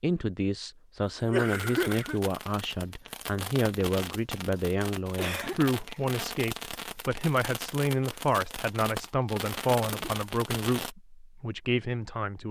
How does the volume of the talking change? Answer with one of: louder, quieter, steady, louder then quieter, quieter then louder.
steady.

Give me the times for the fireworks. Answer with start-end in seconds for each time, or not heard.
1.5-10.9.